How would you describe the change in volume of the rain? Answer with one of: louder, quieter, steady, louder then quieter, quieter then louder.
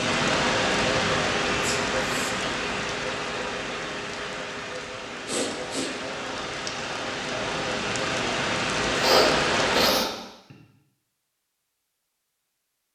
quieter then louder.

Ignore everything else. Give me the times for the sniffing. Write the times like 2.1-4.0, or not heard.
1.6-2.4, 5.2-5.9, 8.9-10.6.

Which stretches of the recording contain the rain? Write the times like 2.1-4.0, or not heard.
0.0-9.9.